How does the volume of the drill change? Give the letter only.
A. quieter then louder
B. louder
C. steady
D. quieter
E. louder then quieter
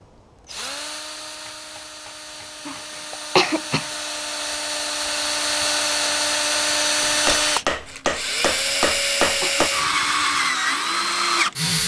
B.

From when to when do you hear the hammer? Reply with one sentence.
You can hear the hammer from 1.1 to 3.0 s and from 7.0 to 9.7 s.